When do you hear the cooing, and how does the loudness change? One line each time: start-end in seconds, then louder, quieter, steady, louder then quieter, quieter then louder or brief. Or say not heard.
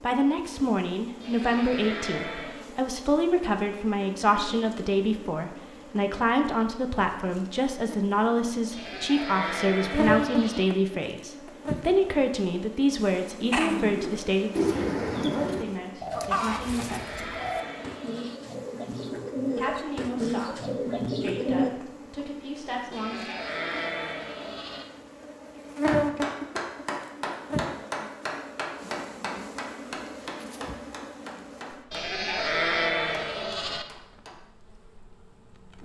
13.5-21.7 quieter then louder.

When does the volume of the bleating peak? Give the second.
33 s.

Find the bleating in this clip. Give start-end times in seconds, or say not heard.
1.2-2.7, 8.7-10.7, 16.6-18.4, 22.9-24.9, 31.9-33.9.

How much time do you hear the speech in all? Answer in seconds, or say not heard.
21 s.